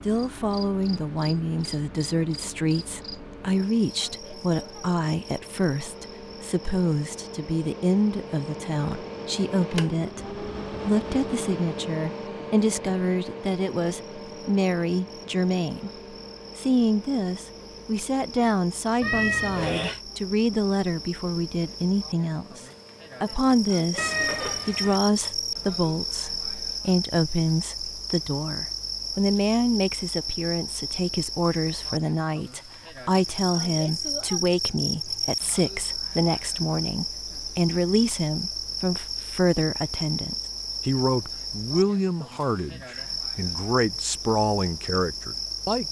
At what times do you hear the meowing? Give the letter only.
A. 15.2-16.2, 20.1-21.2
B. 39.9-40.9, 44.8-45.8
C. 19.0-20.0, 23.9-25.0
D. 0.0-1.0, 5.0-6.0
C.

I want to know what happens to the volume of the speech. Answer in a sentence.
The loudness of the speech stays about the same.